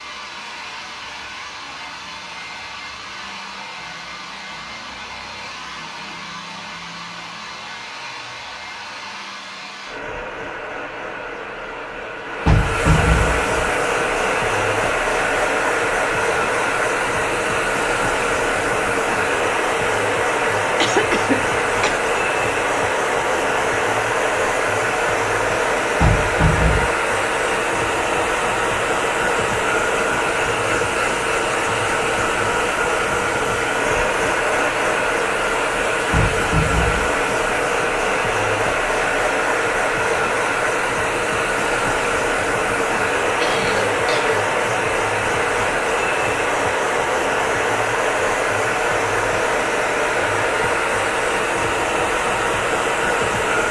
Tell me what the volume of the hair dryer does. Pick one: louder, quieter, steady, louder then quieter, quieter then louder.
louder.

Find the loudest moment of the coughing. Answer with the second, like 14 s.
21 s.